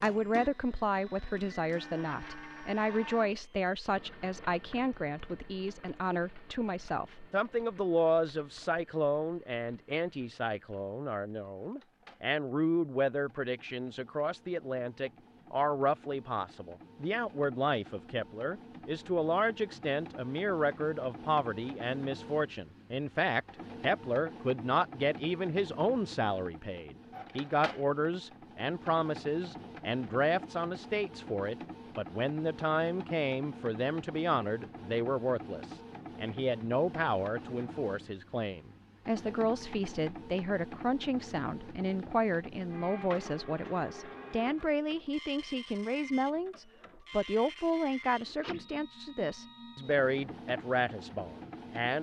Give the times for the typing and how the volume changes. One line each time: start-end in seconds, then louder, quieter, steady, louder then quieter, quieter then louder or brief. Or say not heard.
not heard.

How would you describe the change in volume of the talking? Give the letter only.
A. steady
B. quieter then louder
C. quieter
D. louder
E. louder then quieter
A.